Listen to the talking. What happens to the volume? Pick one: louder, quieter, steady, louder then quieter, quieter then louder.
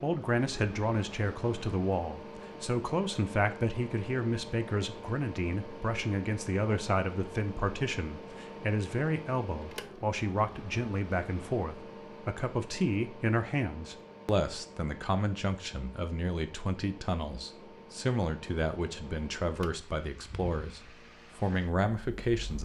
steady.